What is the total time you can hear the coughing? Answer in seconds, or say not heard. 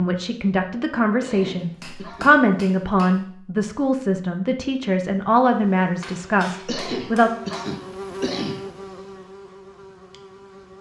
3 s.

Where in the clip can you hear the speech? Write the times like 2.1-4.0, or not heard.
0.0-7.3.